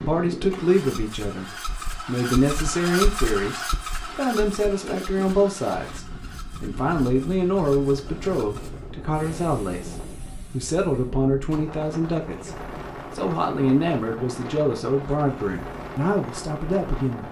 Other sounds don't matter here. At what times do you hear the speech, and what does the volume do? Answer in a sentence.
You can hear the speech from 0.1 to 17.2 s, at a steady volume.